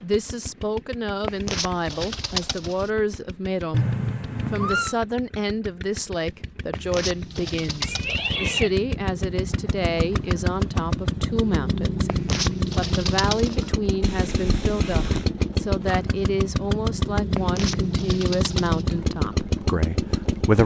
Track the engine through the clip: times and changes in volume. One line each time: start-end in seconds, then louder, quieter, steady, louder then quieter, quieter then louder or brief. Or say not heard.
0.0-20.6 louder.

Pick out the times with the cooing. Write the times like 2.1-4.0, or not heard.
1.2-2.9, 6.7-8.3, 12.1-13.8, 17.4-18.9.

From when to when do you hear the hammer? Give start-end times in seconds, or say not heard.
not heard.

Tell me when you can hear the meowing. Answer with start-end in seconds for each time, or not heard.
3.7-5.0, 7.8-8.7, 14.0-15.3.